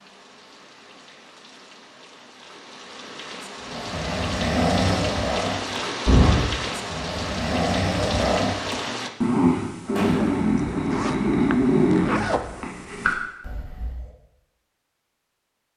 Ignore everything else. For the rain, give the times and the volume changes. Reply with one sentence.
The rain can be heard from 0.0 to 9.1 s, getting louder.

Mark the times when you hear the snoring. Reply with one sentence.
You can hear the snoring from 3.7 to 14.1 s.